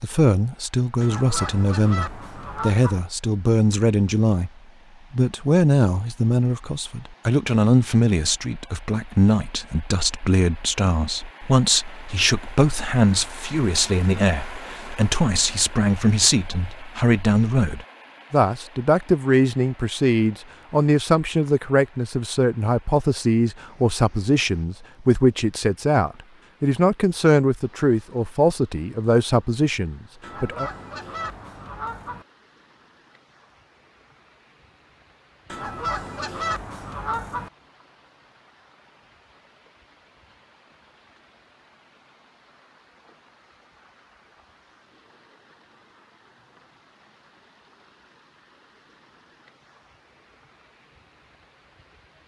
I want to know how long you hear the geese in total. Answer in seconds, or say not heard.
6 s.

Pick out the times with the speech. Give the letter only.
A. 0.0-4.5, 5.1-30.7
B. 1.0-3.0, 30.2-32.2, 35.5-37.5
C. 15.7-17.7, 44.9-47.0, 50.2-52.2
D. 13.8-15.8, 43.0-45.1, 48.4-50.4
A.